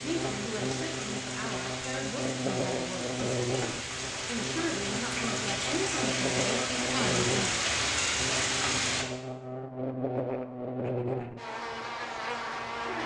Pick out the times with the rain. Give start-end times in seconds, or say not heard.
0.0-9.1.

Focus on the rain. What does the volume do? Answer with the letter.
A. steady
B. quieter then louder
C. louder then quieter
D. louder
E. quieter
D.